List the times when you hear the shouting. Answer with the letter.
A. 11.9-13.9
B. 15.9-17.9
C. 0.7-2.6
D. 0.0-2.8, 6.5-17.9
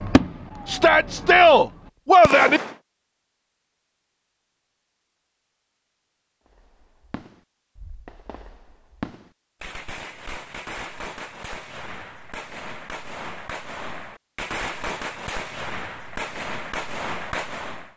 C.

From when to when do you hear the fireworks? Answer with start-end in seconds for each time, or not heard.
0.0-2.8, 6.5-17.9.